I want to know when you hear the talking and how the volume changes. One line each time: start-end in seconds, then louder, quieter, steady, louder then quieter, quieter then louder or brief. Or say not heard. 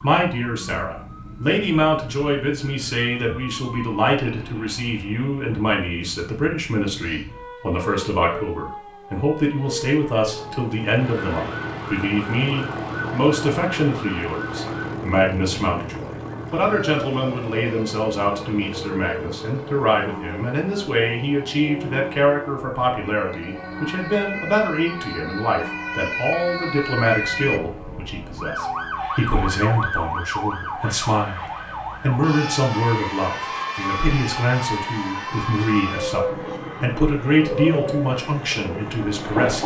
0.0-39.6 steady.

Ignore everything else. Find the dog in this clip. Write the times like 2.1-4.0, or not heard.
not heard.